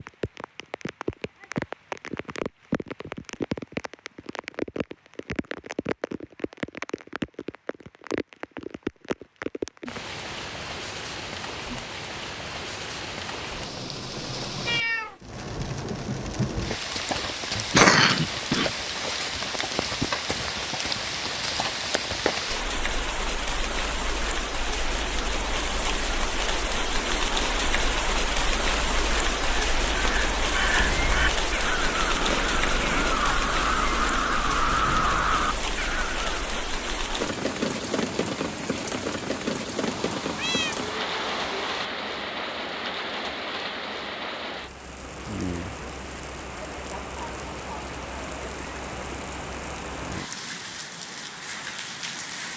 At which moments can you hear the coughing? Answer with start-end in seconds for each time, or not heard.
17.6-18.7.